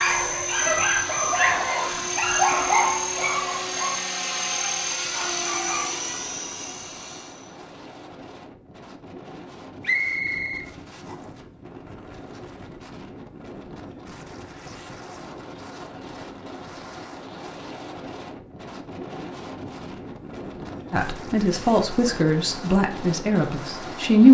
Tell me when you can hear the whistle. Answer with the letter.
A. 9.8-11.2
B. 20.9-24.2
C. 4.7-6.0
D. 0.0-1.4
A.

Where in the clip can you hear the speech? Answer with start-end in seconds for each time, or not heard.
20.9-24.2.